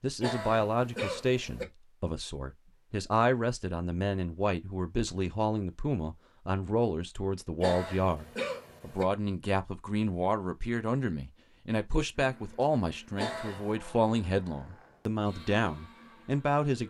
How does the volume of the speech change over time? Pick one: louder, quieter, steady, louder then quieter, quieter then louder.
steady.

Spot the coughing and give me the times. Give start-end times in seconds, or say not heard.
0.2-1.6, 7.6-9.1, 13.2-13.8.